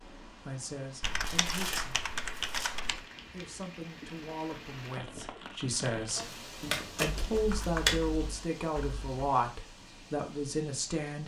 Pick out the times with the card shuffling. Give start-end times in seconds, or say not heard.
1.2-2.8, 6.6-8.0.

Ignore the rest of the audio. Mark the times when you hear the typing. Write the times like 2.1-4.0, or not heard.
1.0-3.0, 7.2-9.2.